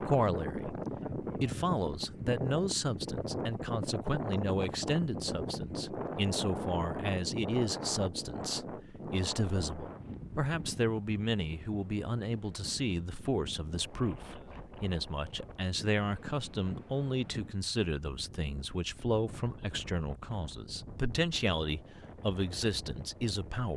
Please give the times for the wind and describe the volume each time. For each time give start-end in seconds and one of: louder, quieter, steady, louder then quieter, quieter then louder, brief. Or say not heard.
0.0-23.7 quieter.